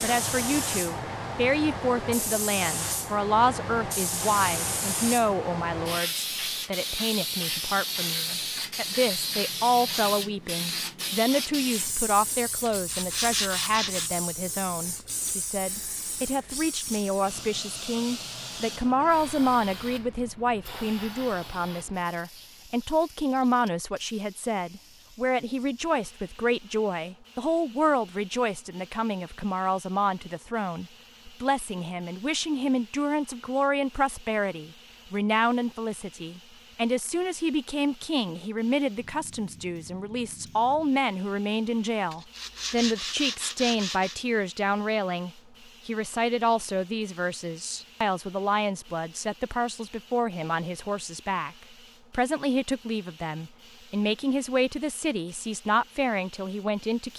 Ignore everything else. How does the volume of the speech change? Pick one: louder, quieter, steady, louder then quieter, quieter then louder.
steady.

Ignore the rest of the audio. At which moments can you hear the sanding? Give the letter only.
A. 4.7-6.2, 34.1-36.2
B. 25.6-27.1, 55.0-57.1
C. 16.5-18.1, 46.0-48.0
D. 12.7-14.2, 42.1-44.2
D.